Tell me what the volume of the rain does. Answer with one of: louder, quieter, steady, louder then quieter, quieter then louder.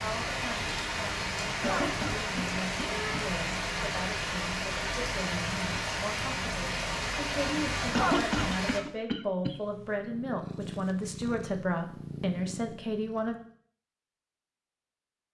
steady.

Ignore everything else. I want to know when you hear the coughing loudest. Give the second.
8 s.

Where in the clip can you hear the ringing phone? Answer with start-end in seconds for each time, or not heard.
not heard.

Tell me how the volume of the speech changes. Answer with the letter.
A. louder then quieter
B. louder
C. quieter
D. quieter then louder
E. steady
B.